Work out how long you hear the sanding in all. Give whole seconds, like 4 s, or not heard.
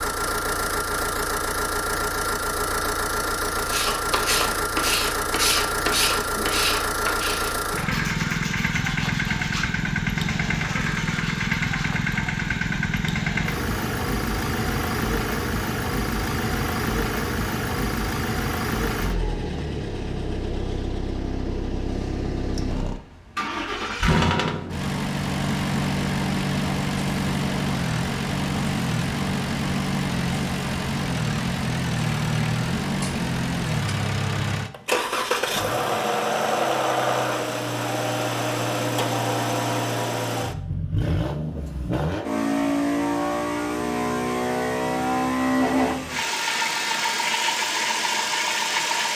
8 s.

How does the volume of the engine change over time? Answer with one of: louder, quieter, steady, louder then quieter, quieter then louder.
steady.